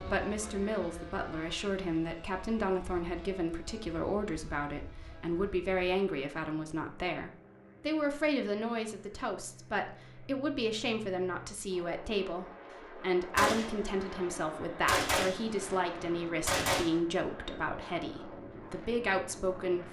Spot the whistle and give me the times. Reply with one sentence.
The whistle can't be heard in this clip.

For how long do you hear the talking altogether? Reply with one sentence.
The talking can be heard for 20 seconds in total.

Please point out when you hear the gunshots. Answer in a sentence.
The gunshots can be heard from 13.3 to 16.9 s.